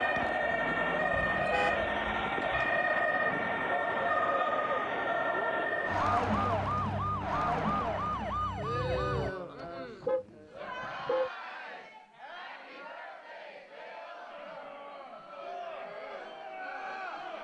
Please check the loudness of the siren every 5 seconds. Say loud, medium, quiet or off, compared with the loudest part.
loud, loud, off, off.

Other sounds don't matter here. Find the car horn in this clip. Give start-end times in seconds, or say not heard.
1.1-2.7, 9.3-11.3.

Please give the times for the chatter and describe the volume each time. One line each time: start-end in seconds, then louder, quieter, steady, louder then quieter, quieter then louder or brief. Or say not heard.
0.0-17.3 quieter.